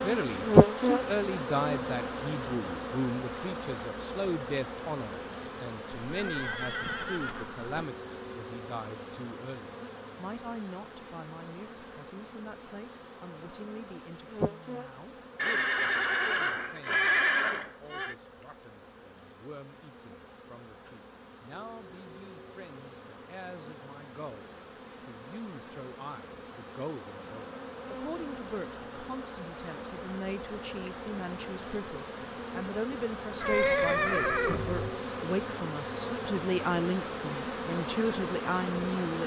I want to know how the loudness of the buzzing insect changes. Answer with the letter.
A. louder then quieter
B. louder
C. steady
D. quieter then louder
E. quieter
D.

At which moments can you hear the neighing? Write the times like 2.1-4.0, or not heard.
6.1-7.8, 15.3-18.1, 33.4-34.9.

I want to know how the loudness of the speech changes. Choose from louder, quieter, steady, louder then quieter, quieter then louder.
quieter then louder.